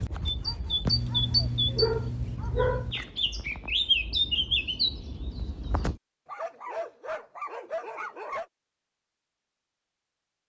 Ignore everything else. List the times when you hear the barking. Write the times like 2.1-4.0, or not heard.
0.8-3.0, 6.2-8.4.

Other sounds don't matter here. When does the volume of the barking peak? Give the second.
2 s.